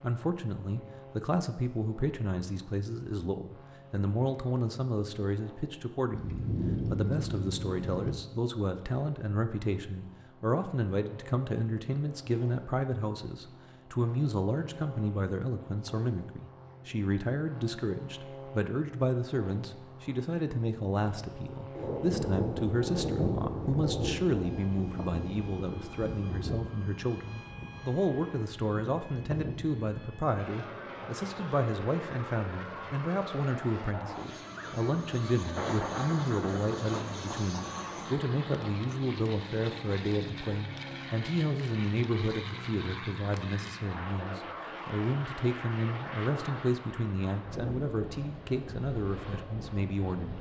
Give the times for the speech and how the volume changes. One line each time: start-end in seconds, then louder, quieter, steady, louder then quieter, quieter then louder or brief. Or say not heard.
0.0-50.3 steady.